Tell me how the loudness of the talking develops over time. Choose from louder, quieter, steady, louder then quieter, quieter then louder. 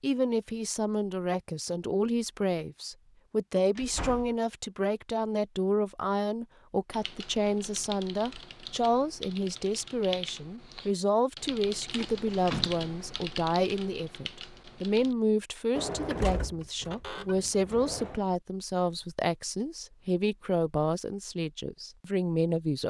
steady.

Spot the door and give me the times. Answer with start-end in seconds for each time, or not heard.
3.8-4.3, 11.9-12.8, 15.8-18.2.